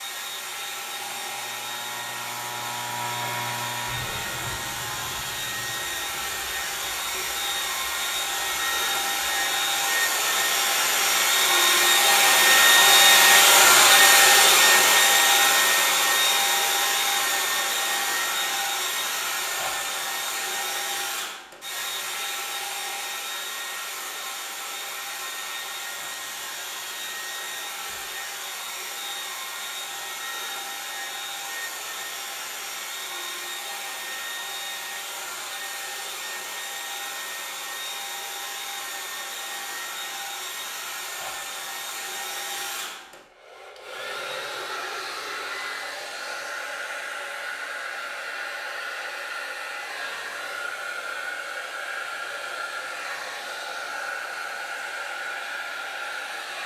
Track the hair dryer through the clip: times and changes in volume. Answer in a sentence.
The hair dryer can be heard from 0.0 to 56.6 s, getting louder then quieter.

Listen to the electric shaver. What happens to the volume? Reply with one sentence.
The volume of the electric shaver goes up, then down.